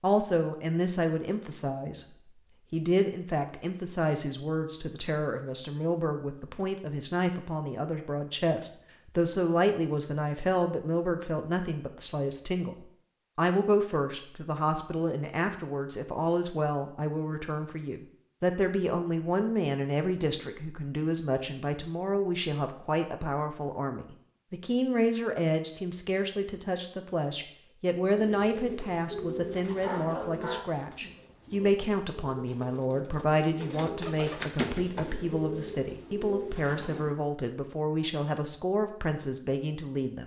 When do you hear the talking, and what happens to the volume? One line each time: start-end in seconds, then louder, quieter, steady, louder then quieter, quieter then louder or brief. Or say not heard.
0.0-2.0 brief
2.7-40.2 steady.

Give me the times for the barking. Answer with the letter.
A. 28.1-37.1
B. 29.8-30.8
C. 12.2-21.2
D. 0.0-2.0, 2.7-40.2
B.